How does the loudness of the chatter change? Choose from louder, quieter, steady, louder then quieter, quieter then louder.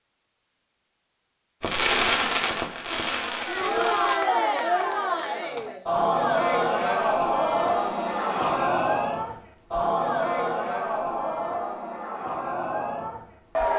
quieter.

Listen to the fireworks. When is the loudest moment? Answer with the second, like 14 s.
2 s.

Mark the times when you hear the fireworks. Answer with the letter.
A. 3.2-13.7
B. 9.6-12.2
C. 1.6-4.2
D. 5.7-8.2
C.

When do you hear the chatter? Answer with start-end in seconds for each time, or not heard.
3.2-13.7.